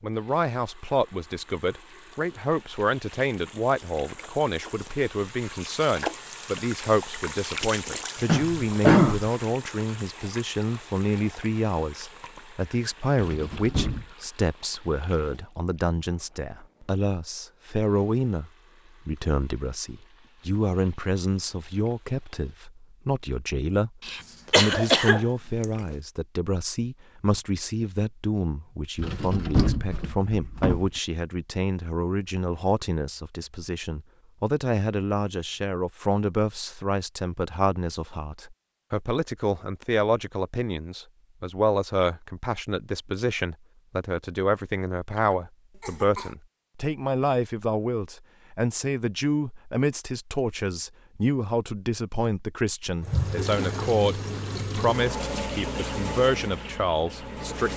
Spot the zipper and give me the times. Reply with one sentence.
The zipper can't be heard in this clip.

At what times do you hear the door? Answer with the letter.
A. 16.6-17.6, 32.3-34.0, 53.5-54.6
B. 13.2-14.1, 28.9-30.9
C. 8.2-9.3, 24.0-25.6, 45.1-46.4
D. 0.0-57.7
B.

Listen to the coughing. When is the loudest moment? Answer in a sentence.
The volume of the coughing peaks at 9 seconds.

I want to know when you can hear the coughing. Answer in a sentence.
The coughing can be heard from 8.2 to 9.3 s, from 24.0 to 25.6 s and from 45.1 to 46.4 s.